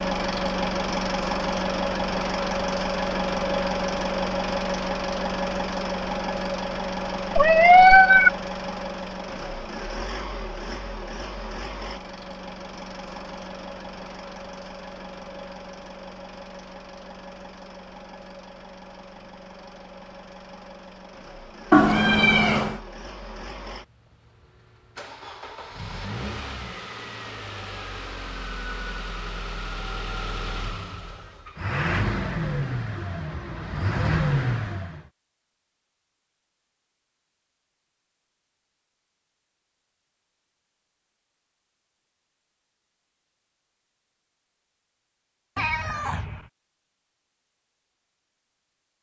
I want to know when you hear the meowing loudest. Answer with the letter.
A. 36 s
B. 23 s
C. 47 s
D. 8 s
D.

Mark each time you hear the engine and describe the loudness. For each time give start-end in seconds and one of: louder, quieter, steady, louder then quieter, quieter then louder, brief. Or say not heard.
0.0-35.0 quieter then louder.